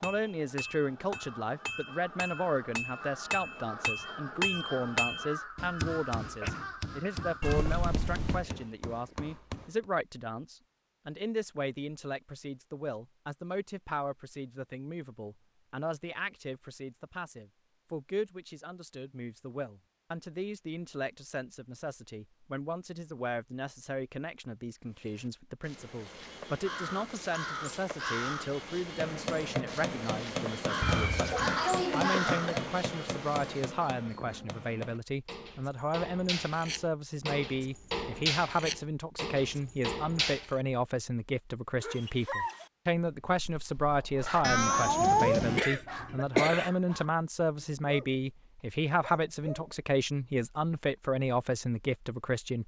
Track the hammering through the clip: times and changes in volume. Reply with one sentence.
The hammering can be heard from 0.0 to 9.8 s, getting louder then quieter; and from 28.9 to 40.5 s, getting quieter then louder.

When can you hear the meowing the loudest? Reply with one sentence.
The loudest moment of the meowing is at 45 seconds.